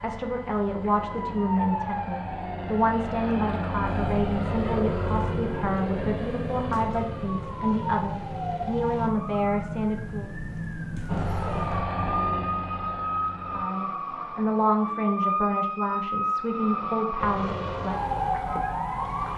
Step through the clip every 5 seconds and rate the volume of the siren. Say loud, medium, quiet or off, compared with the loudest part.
medium, medium, loud, loud.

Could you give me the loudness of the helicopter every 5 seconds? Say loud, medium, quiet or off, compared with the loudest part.
loud, loud, loud, medium.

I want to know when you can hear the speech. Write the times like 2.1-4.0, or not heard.
0.0-10.2, 13.5-18.0.